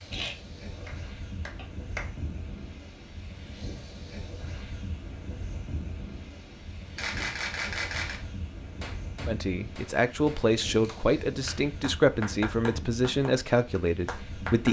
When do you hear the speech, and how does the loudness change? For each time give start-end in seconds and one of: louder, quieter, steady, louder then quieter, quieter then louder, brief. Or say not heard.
9.2-14.6 steady.